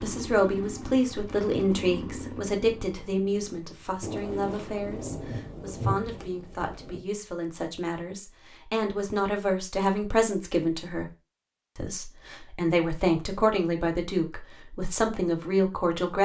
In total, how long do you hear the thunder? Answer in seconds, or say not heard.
3 s.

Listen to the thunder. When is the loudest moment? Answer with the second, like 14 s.
6 s.